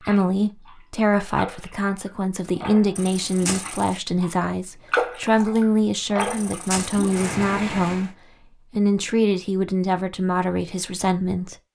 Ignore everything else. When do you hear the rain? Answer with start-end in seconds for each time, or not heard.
0.0-8.1.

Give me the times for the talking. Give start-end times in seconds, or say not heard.
0.0-8.1, 8.7-11.6.